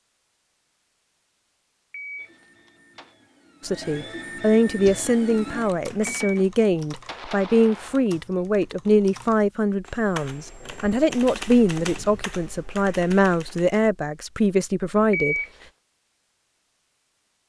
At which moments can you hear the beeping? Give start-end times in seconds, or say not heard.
1.9-3.1, 6.0-8.1, 15.1-15.5.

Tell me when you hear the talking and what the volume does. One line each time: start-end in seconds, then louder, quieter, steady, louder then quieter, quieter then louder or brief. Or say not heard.
3.6-15.3 steady.